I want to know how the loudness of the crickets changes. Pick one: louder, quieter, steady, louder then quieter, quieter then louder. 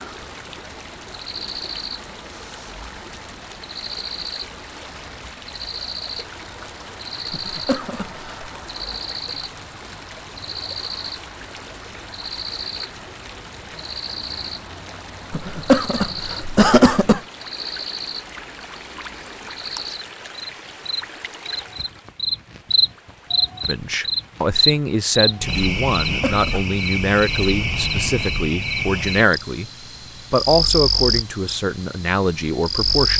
louder.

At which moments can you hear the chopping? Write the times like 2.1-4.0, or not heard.
not heard.